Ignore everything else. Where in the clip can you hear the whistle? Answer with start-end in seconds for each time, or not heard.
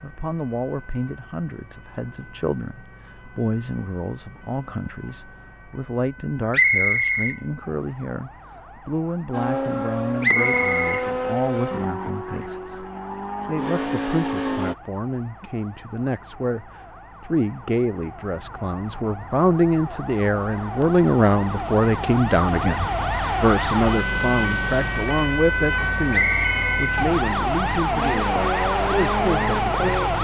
6.5-7.3, 10.2-11.1, 26.1-26.9.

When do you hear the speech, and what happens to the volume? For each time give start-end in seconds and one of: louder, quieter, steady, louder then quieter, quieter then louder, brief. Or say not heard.
0.0-12.8 steady
13.4-30.1 louder then quieter.